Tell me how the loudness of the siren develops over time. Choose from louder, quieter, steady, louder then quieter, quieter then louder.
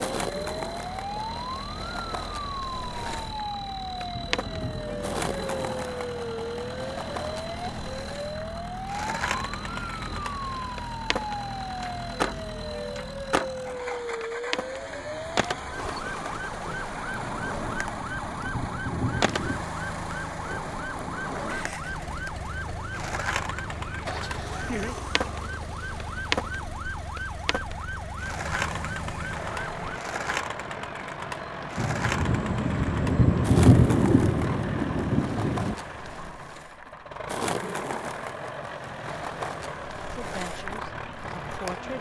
steady.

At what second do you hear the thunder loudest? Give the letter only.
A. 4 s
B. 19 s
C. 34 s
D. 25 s
C.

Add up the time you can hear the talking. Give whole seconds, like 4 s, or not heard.
2 s.